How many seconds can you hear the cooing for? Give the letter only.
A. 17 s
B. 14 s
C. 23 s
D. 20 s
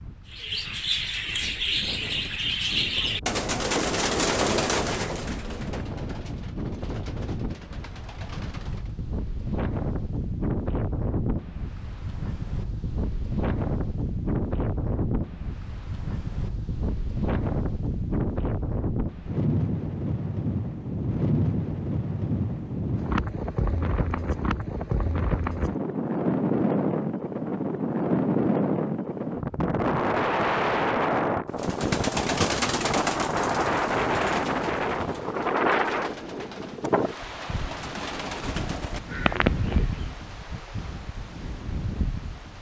A.